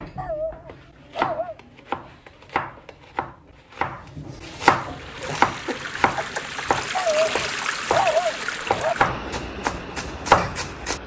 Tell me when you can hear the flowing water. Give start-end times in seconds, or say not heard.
4.7-11.0.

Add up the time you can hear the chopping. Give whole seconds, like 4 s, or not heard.
11 s.